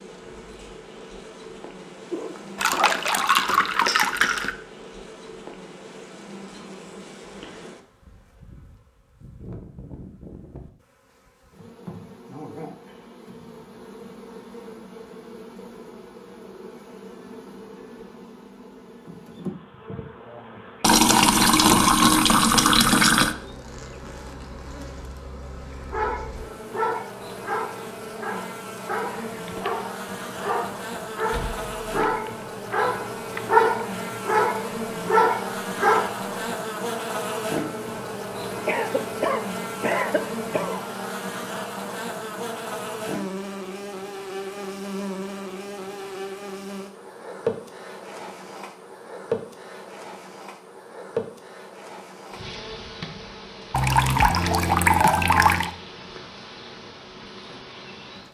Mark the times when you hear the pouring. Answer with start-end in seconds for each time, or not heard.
2.5-4.5, 20.8-23.4, 53.7-55.7.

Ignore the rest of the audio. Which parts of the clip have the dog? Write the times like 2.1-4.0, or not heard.
25.8-36.2.